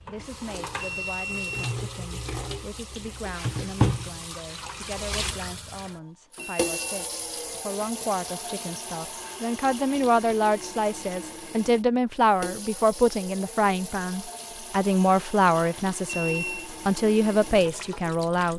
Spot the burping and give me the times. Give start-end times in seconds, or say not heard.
not heard.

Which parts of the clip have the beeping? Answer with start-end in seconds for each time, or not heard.
0.8-1.8, 6.3-7.0, 16.1-16.7.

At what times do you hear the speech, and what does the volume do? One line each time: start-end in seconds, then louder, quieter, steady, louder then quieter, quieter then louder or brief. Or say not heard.
0.1-18.5 louder.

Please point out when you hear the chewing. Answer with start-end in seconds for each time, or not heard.
not heard.